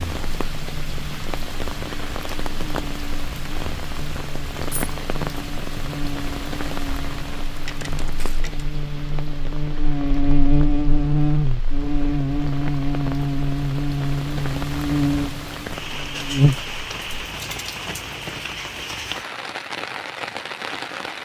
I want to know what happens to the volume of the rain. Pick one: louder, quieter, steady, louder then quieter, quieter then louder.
quieter then louder.